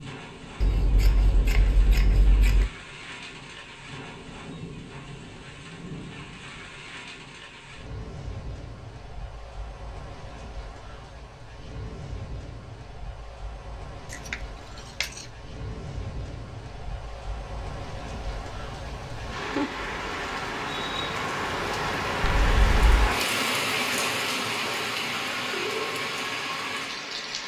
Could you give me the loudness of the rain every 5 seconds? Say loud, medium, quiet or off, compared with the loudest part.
quiet, quiet, quiet, medium, loud, loud.